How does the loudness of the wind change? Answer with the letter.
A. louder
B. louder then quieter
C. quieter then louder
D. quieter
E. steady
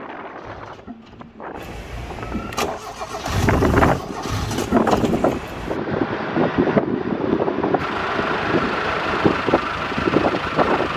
A.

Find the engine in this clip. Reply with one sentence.
The engine can be heard from 0.2 to 5.8 s and from 7.8 to 10.9 s.